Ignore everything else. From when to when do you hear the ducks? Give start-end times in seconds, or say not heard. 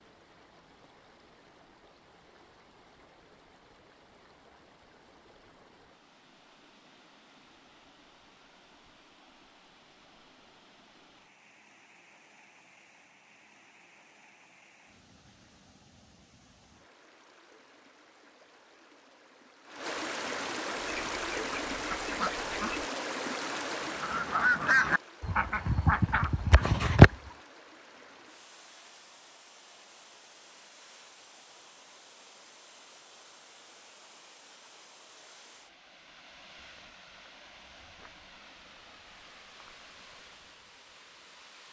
20.8-27.1.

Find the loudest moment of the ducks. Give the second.
27 s.